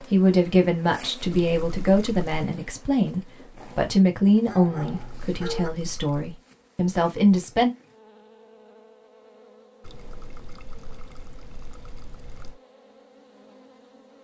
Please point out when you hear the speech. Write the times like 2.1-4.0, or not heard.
0.1-7.7.